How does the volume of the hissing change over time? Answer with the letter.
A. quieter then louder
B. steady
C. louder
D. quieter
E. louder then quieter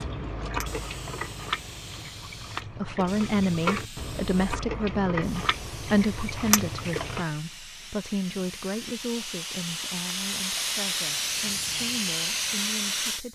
C.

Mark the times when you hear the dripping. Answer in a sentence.
The dripping can be heard from 0.0 to 7.2 s.